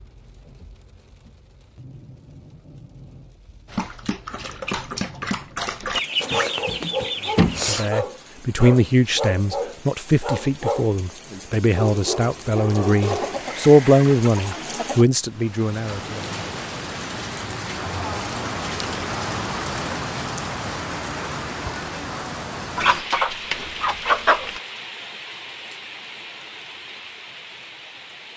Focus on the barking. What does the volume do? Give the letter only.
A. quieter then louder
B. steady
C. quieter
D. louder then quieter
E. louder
B.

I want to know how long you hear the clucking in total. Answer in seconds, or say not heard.
6 s.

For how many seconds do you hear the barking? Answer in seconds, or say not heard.
10 s.